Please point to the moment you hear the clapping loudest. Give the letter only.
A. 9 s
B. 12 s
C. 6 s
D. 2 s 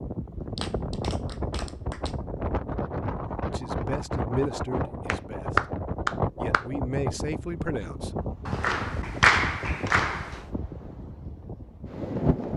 A.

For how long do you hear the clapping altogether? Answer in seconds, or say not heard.
5 s.